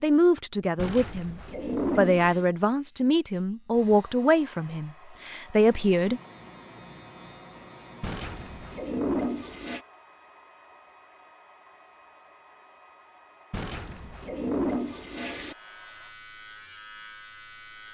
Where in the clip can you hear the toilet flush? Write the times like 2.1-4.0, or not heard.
0.8-2.5, 8.0-9.8, 13.5-15.6.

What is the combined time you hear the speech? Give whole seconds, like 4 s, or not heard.
6 s.